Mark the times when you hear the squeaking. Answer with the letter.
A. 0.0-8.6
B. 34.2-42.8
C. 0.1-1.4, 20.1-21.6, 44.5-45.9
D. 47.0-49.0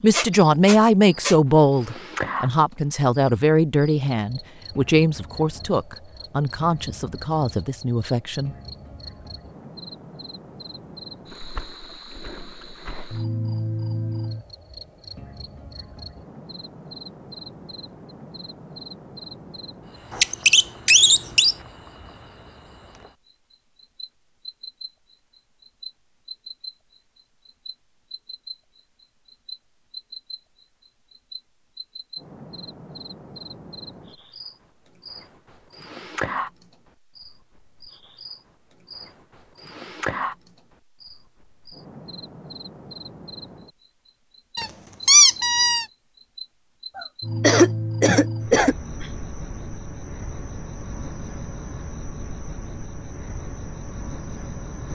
C.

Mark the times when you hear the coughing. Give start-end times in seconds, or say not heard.
47.0-49.0.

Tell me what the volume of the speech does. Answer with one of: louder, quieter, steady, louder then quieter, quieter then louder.
quieter.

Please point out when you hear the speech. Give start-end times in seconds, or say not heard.
0.0-8.6.